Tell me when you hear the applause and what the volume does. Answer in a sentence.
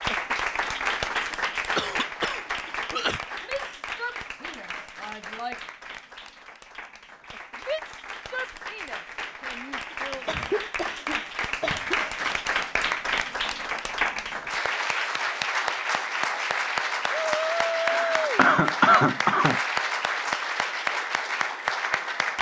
The applause can be heard from 0.0 to 22.3 s, getting quieter then louder.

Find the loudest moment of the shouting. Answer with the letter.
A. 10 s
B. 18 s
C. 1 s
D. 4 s
B.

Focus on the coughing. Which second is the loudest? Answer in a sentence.
The volume of the coughing peaks at 19 seconds.